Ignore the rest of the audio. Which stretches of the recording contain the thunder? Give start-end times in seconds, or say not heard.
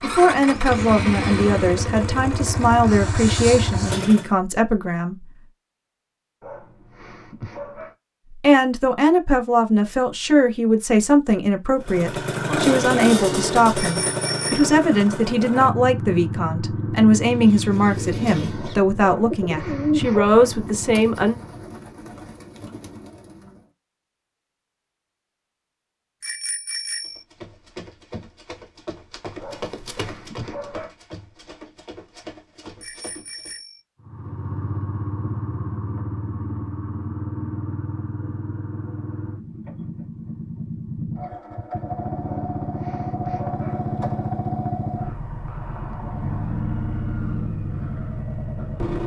not heard.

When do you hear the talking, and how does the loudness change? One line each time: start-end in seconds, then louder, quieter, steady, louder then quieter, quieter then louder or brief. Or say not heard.
0.0-5.2 steady
8.3-21.4 steady.